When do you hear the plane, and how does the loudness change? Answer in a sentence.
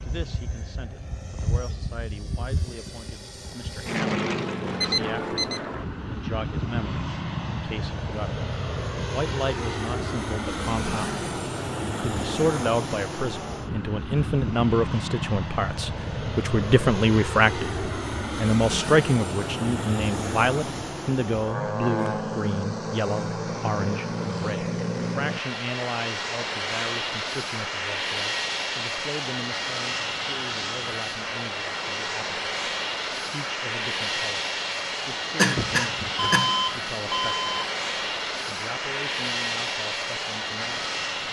The plane can be heard from 0.0 to 41.2 s, at a steady volume.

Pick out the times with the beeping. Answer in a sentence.
You can hear the beeping from 4.8 to 5.6 s and from 36.1 to 37.8 s.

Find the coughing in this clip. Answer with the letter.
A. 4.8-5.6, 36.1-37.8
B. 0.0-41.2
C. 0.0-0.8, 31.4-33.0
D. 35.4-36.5
D.